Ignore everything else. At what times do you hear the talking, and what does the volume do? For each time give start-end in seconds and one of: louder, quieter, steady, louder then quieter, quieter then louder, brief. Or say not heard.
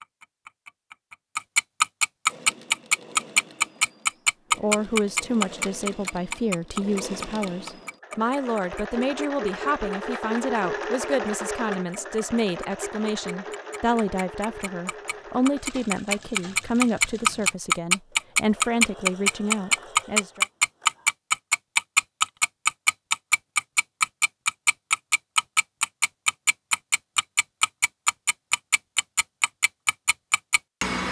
4.5-20.4 steady.